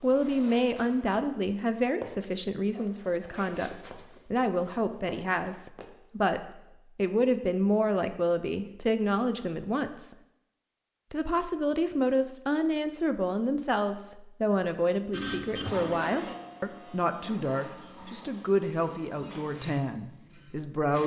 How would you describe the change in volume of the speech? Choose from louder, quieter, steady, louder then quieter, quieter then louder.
steady.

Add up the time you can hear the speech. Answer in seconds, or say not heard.
20 s.